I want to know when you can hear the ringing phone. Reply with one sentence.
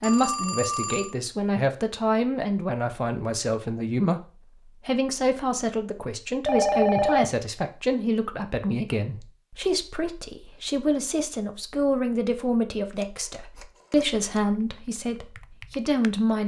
You can hear the ringing phone from 0.0 to 1.1 s, from 6.5 to 7.3 s and from 12.9 to 14.2 s.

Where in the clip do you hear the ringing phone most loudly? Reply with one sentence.
The volume of the ringing phone peaks at 7 seconds.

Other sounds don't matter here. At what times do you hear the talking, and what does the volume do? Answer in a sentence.
The talking can be heard from 0.0 to 16.4 s, at a steady volume.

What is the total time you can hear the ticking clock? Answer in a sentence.
The ticking clock can't be heard in this clip.